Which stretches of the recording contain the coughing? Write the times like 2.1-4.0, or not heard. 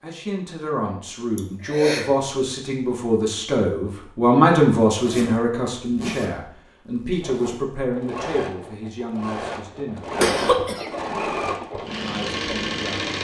1.4-2.1, 10.2-10.9.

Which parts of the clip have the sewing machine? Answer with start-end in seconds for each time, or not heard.
7.2-13.1.